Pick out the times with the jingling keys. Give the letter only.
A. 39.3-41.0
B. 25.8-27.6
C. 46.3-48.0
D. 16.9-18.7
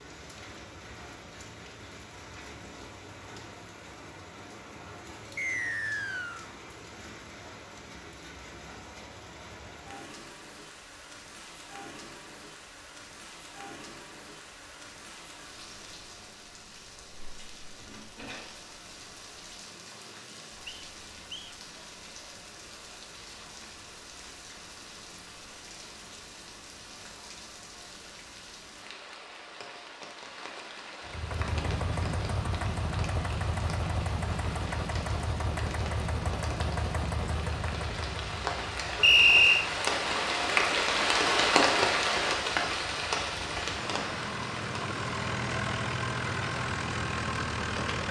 D.